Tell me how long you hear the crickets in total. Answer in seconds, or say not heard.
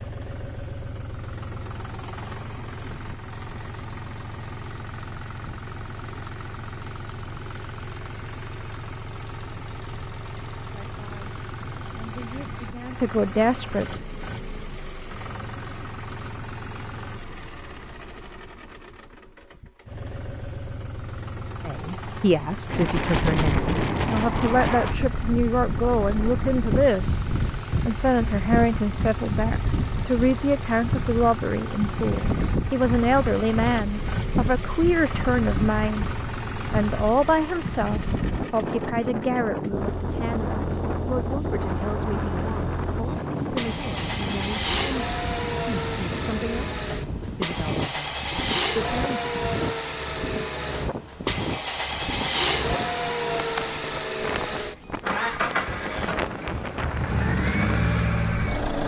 not heard.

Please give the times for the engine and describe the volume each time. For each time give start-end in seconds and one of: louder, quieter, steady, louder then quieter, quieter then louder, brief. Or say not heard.
0.0-58.8 louder.